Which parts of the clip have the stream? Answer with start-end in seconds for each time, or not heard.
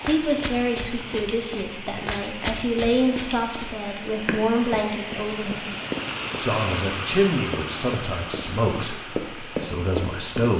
0.0-10.5.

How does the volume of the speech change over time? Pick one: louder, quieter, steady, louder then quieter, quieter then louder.
steady.